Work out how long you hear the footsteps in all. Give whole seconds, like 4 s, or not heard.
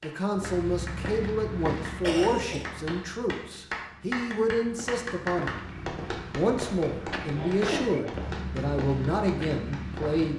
10 s.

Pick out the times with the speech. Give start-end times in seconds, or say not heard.
0.0-5.5, 6.3-10.3.